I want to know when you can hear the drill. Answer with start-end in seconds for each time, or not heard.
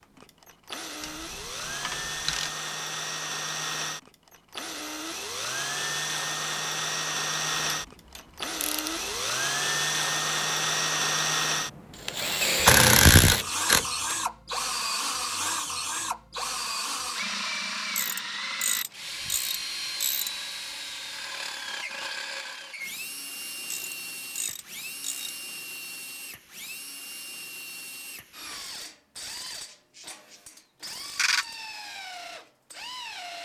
0.0-33.3.